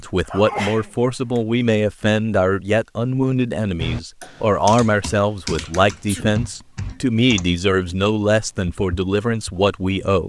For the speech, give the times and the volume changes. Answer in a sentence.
You can hear the speech from 0.0 to 10.2 s, at a steady volume.